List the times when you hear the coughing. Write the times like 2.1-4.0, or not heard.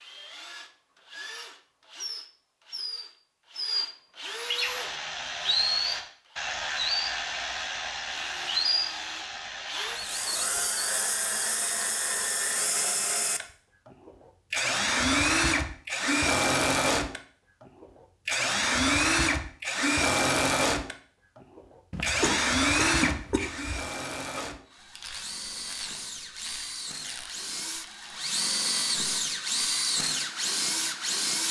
21.9-23.9.